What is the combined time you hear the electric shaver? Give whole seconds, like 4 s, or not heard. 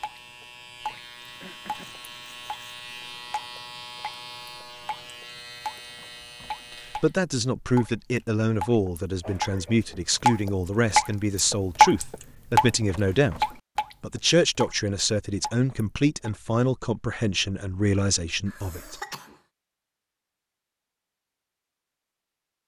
7 s.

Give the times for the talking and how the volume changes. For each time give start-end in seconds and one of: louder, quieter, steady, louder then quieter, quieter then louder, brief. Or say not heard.
7.0-19.1 steady.